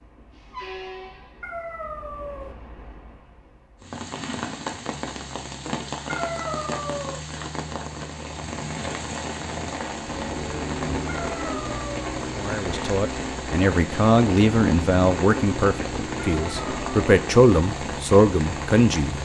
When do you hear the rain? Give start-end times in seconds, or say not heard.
3.8-19.1.